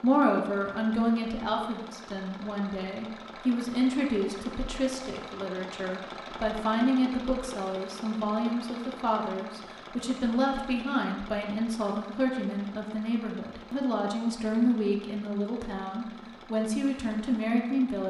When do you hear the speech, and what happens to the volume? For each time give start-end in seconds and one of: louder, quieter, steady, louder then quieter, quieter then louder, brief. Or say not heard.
0.0-18.0 steady.